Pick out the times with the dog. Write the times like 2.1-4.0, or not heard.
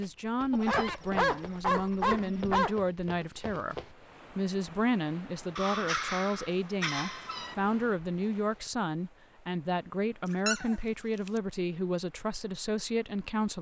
0.5-2.8, 5.5-7.5, 10.2-11.4.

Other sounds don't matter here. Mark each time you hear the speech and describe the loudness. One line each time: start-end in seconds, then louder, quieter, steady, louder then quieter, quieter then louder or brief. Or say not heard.
0.0-13.5 steady.